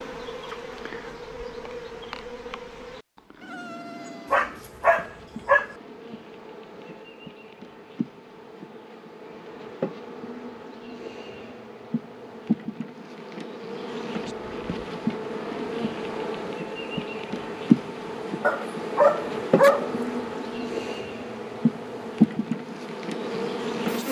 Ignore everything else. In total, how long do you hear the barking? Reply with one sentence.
The barking can be heard for 3 seconds in total.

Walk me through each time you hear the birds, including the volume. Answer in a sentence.
The birds can't be heard in this clip.